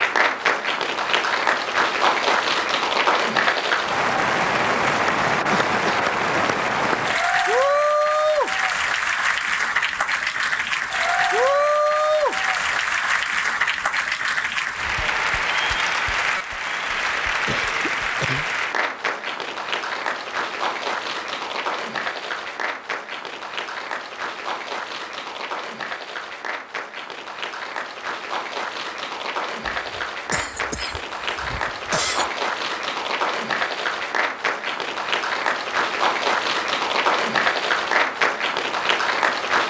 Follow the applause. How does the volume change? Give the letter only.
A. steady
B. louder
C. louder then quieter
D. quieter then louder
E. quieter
D.